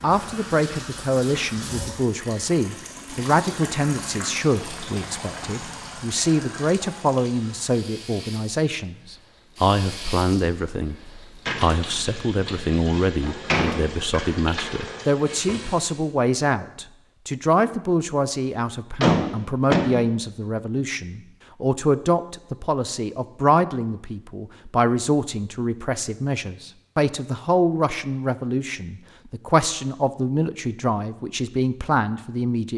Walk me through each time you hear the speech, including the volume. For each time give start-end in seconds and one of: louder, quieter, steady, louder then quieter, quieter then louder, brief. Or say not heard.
0.0-32.7 steady.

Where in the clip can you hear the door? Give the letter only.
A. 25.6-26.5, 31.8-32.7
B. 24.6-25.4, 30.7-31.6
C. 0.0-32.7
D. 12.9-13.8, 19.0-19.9
D.